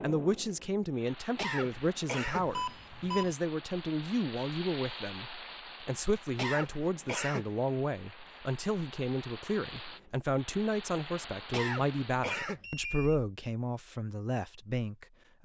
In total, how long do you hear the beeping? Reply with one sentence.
You can hear the beeping for 2 seconds altogether.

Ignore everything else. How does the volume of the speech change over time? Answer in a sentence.
The loudness of the speech stays about the same.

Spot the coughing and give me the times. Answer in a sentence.
The coughing can be heard from 1.4 to 2.5 s, from 6.3 to 7.5 s and from 11.5 to 12.6 s.